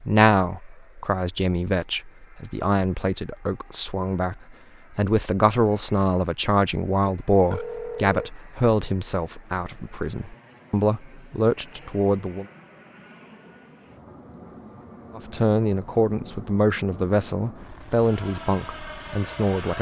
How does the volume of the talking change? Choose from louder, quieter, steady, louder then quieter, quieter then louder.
steady.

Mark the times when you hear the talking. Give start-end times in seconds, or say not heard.
0.0-12.4, 15.2-19.7.